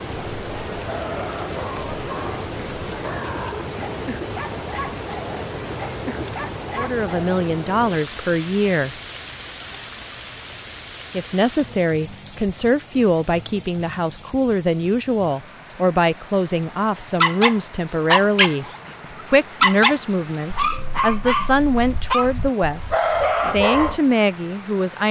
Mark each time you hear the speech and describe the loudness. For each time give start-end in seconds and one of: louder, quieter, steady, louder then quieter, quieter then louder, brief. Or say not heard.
6.8-8.9 brief
11.1-25.0 steady.